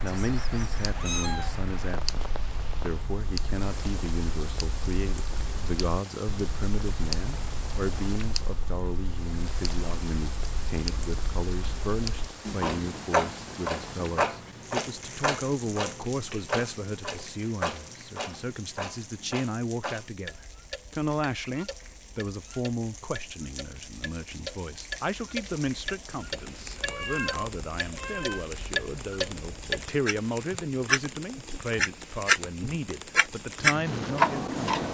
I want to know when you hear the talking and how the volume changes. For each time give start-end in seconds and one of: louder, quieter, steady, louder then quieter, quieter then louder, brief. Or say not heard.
0.0-34.8 steady.